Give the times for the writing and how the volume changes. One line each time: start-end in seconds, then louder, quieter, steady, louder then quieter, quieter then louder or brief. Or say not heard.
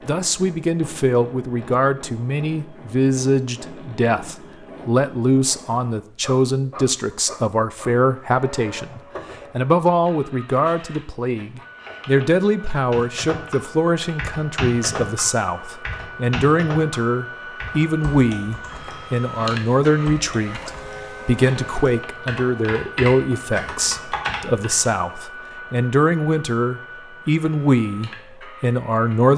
not heard.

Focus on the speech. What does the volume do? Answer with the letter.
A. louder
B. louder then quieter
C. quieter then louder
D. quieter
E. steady
E.